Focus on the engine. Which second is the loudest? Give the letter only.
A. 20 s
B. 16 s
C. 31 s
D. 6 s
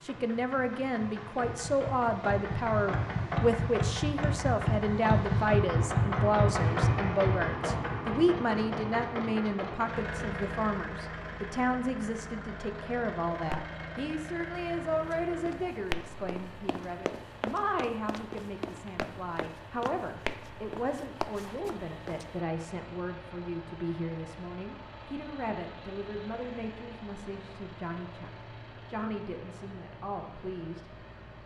D.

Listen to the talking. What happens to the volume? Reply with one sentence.
The volume of the talking goes down.